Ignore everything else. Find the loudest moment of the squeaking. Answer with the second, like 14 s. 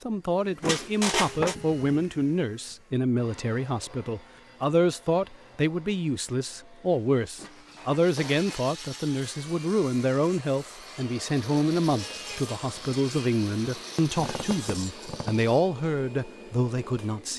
1 s.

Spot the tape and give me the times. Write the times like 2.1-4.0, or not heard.
not heard.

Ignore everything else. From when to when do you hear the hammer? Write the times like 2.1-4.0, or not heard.
not heard.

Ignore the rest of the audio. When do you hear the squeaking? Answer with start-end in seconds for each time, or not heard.
0.6-1.6, 7.3-8.7, 14.2-15.4.